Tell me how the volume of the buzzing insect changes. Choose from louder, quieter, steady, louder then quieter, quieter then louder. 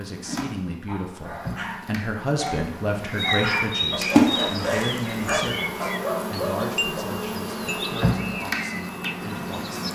louder.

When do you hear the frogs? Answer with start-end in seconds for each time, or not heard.
not heard.